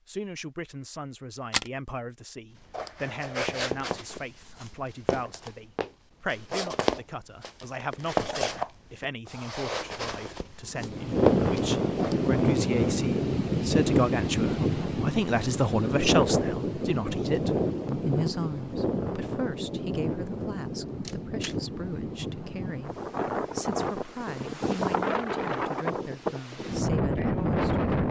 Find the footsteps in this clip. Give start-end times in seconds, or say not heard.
2.7-12.3.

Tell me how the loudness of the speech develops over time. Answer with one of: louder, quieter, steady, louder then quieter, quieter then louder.
louder then quieter.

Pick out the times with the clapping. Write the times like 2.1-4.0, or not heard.
not heard.